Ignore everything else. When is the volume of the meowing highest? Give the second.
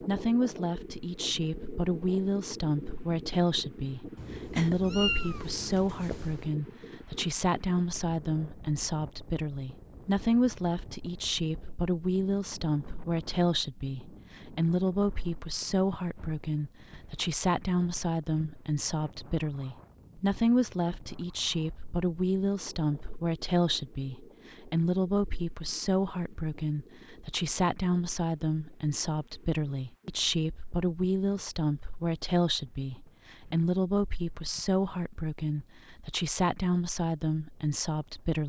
5 s.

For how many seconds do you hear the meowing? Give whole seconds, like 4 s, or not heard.
2 s.